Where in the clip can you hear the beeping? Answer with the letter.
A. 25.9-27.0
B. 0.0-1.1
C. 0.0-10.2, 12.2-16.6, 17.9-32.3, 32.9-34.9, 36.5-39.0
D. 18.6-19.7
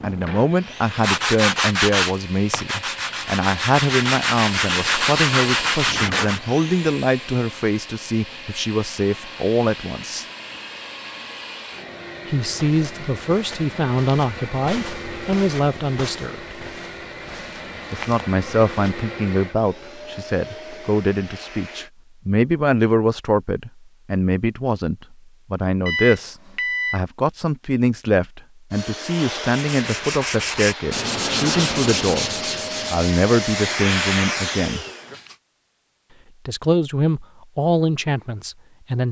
A.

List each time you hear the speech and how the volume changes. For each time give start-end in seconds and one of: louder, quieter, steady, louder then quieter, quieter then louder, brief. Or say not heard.
0.0-10.2 steady
12.2-16.6 steady
17.9-32.3 steady
32.9-34.9 brief
36.5-39.0 brief.